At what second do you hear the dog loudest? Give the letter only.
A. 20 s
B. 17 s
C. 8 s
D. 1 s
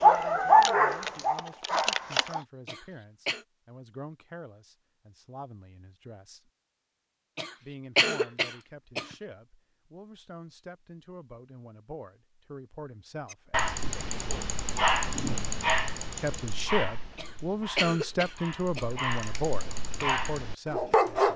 D.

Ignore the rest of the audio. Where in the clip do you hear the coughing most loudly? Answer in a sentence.
The volume of the coughing peaks at 8 seconds.